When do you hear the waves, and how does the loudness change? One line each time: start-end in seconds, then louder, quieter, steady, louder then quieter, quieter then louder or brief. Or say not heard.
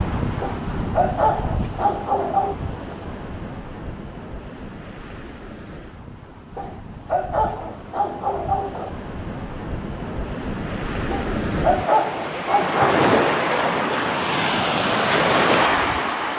0.0-16.3 quieter then louder.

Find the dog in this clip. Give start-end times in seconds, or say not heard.
0.4-2.5, 6.5-8.9, 11.1-12.9.